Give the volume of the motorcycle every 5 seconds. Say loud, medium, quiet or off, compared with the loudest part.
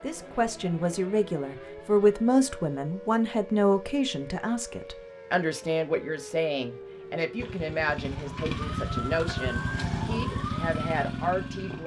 off, loud, loud.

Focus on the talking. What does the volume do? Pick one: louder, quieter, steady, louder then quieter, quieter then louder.
quieter.